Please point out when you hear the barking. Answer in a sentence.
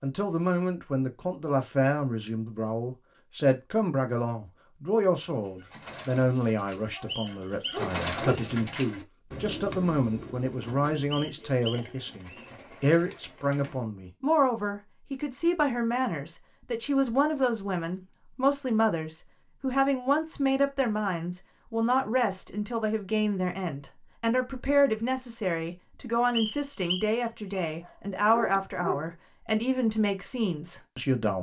The barking can be heard from 7.0 to 8.5 s and from 27.6 to 29.1 s.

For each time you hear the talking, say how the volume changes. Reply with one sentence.
You can hear the talking from 0.0 to 31.3 s, at a steady volume.